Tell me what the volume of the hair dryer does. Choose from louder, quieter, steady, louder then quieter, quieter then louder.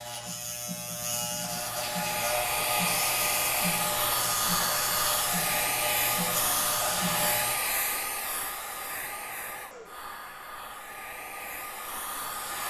quieter.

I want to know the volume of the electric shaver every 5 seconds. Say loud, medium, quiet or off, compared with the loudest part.
loud, loud, off.